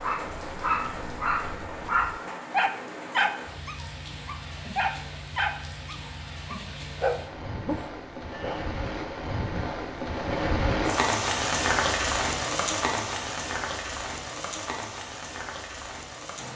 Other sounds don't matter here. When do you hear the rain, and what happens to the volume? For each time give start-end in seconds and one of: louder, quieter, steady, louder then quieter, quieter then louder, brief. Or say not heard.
0.0-16.5 louder then quieter.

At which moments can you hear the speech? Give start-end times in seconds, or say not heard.
not heard.